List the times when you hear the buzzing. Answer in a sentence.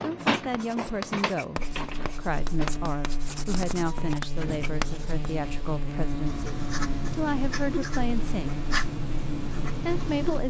You can hear the buzzing from 1.6 to 10.4 s.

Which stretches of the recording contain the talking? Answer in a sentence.
The talking can be heard from 0.0 to 8.7 s and from 9.8 to 10.4 s.